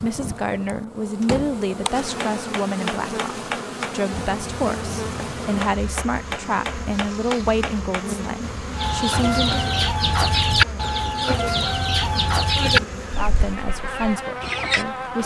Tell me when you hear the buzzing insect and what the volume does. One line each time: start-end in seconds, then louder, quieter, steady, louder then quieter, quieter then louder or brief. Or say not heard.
0.0-15.2 steady.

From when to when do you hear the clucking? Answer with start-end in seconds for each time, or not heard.
8.8-14.8.